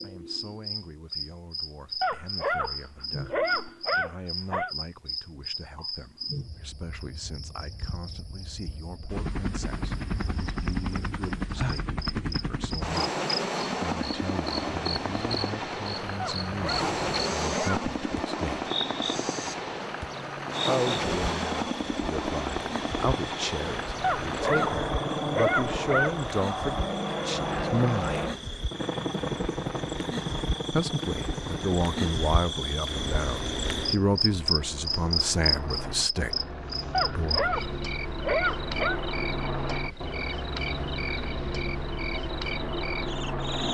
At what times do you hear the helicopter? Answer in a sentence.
The helicopter can be heard from 9.1 to 43.6 s.